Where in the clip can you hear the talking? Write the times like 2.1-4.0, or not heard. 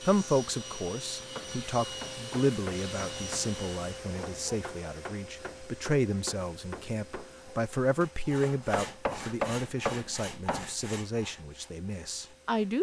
0.0-12.7.